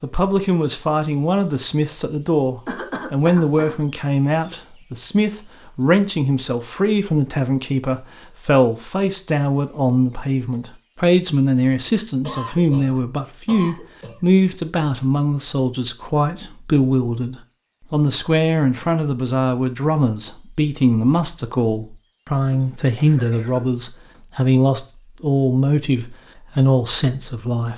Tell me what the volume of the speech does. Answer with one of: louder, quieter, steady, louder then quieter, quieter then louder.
steady.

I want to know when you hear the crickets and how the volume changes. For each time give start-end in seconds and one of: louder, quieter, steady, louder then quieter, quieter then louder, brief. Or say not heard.
0.0-27.7 quieter.